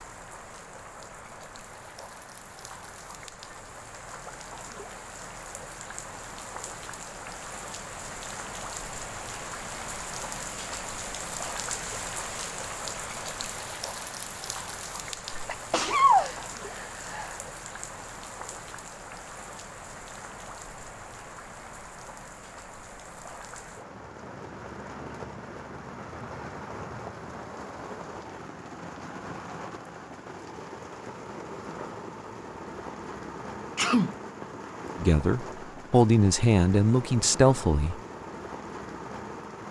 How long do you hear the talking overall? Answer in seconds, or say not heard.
3 s.